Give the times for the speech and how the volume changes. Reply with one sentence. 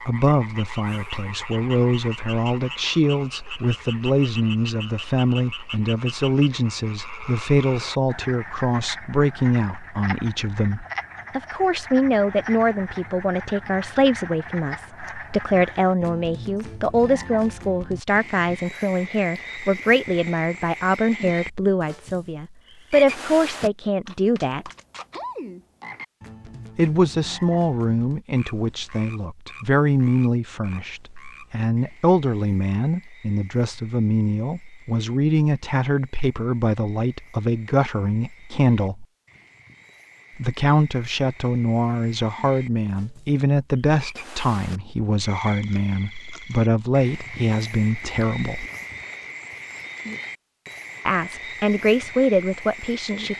You can hear the speech from 0.1 to 24.7 s, at a steady volume; from 26.8 to 39.0 s, at a steady volume; from 40.4 to 48.6 s, at a steady volume; and briefly from 51.0 to 53.3 s.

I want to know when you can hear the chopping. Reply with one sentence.
The chopping can't be heard in this clip.